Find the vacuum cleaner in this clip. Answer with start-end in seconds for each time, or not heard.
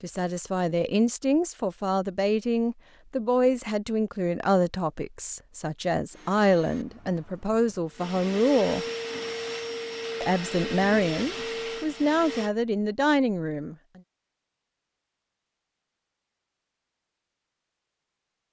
6.1-12.5.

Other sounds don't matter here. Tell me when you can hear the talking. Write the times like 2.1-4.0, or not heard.
0.0-8.8, 10.2-13.8.